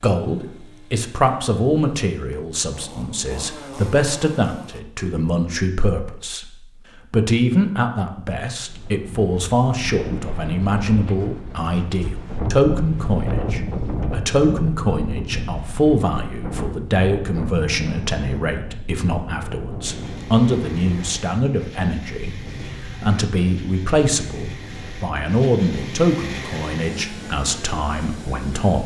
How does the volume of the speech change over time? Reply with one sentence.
The loudness of the speech stays about the same.